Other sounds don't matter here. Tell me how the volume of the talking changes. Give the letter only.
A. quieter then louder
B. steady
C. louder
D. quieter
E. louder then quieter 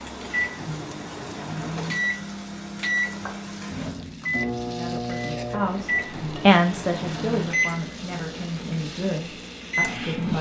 E.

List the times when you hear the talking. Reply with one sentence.
The talking can be heard from 4.7 to 10.3 s.